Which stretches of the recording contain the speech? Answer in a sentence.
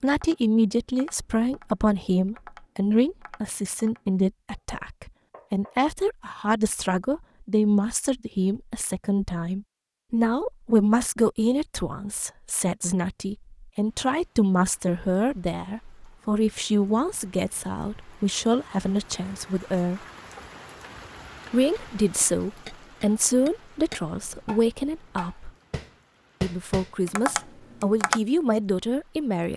The speech can be heard from 0.0 to 20.0 s, from 21.5 to 25.5 s and from 26.4 to 29.5 s.